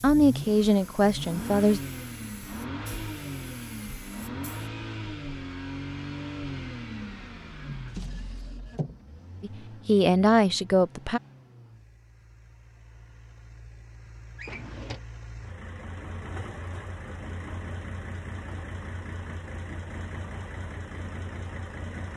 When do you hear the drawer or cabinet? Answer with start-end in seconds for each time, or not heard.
7.6-8.9, 14.3-15.0.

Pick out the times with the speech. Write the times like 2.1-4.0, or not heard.
0.0-1.8, 9.4-11.2.